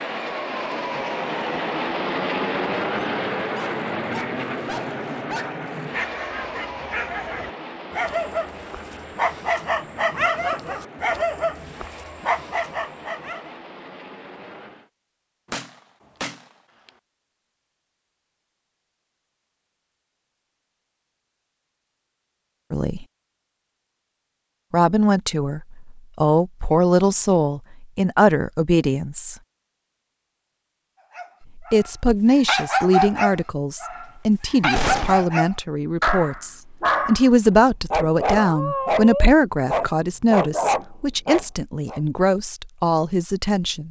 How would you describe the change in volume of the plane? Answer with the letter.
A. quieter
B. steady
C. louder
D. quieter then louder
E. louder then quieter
A.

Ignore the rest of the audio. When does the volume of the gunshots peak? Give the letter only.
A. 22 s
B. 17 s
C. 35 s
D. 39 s
C.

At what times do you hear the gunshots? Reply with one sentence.
You can hear the gunshots from 15.5 to 16.4 s and from 34.8 to 35.2 s.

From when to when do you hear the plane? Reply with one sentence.
The plane can be heard from 0.0 to 14.9 s.